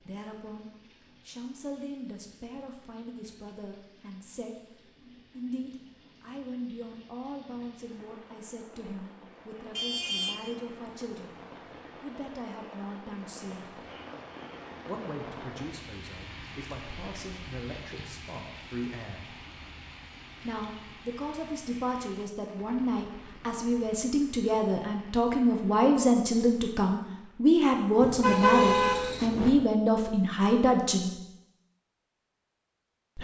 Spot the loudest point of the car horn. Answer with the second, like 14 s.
29 s.